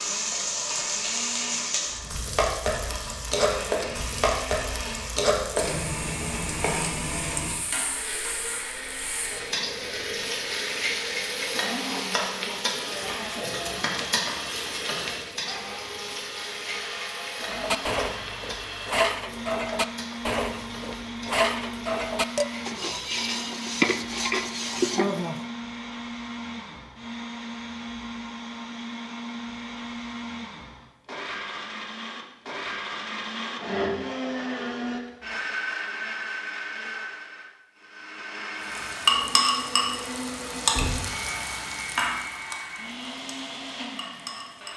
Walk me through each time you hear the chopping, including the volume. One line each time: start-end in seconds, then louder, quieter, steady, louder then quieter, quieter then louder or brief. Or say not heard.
not heard.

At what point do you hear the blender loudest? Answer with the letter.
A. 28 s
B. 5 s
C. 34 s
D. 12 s
C.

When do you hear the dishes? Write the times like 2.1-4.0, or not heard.
17.4-25.4.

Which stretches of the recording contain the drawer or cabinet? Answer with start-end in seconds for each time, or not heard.
40.7-41.3.